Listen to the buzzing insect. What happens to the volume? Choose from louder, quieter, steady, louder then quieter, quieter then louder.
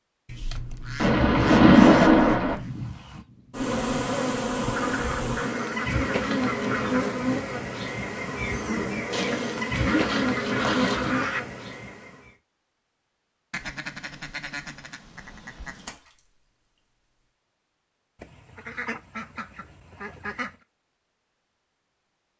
steady.